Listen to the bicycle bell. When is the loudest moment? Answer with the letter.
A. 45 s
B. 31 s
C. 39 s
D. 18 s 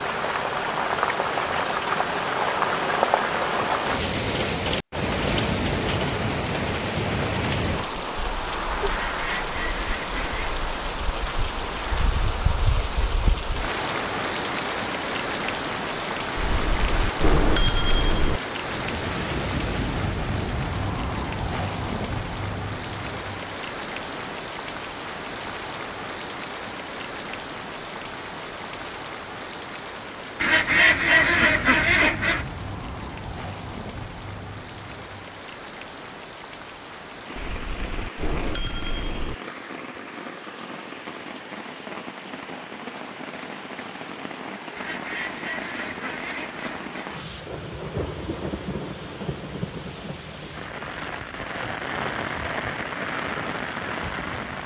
D.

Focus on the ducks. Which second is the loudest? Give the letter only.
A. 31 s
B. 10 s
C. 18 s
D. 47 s
A.